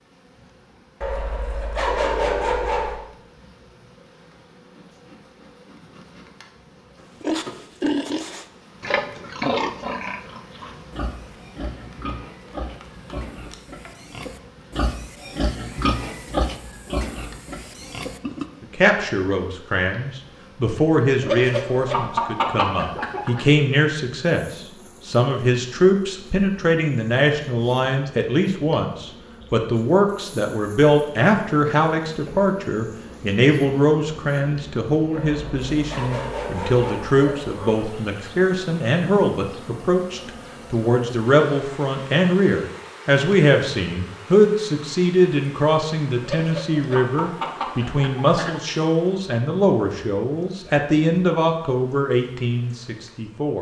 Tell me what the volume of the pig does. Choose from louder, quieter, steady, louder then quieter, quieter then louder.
quieter then louder.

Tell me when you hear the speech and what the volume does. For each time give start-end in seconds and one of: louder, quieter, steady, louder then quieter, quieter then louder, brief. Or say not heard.
18.6-53.5 steady.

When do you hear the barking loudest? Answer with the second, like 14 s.
2 s.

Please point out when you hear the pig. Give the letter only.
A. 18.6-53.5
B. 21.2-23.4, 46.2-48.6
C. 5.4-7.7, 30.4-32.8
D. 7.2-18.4
D.